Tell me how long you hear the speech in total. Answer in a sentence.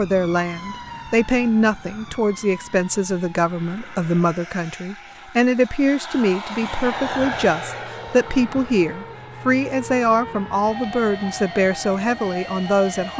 You can hear the speech for 13 seconds altogether.